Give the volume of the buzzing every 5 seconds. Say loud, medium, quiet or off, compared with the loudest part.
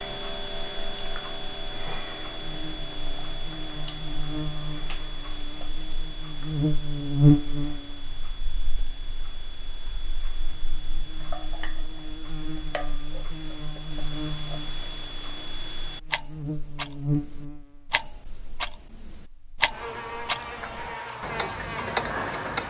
quiet, loud, quiet, medium, medium.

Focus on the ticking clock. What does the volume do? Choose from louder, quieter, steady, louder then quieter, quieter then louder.
quieter then louder.